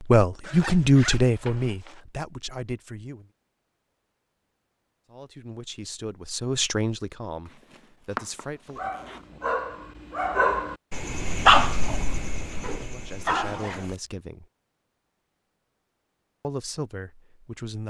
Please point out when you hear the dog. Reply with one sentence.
You can hear the dog from 8.8 to 14.0 s.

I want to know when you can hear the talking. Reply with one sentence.
You can hear the talking from 0.0 to 3.2 s, from 5.1 to 8.9 s, from 12.7 to 14.4 s and from 16.4 to 17.8 s.